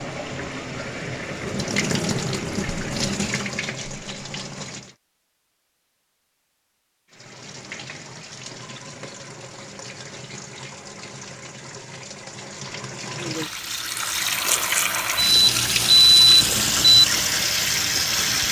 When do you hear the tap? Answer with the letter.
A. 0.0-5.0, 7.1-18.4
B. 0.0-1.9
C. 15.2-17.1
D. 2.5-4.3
A.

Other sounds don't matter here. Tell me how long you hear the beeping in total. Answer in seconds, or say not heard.
2 s.